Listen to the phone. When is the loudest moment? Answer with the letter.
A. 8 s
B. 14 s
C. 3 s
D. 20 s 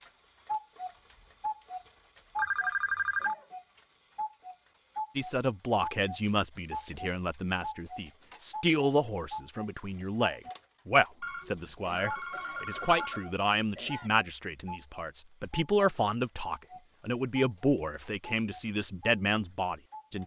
C.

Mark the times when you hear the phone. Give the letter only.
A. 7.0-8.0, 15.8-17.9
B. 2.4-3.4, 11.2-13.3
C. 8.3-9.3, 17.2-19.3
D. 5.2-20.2
B.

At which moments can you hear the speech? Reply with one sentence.
You can hear the speech from 5.2 to 20.2 s.